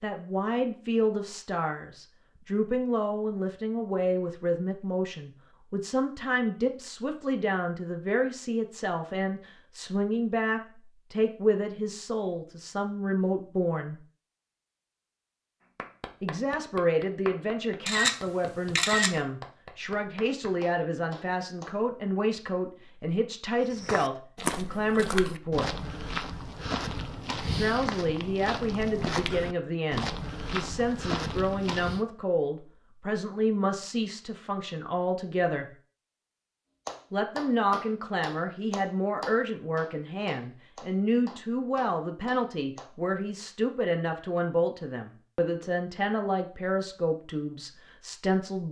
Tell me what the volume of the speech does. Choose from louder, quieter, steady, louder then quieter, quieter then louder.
steady.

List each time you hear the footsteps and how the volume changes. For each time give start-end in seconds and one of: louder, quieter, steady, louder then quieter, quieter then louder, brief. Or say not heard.
23.6-32.0 steady.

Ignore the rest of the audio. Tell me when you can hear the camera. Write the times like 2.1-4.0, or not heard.
17.9-19.1.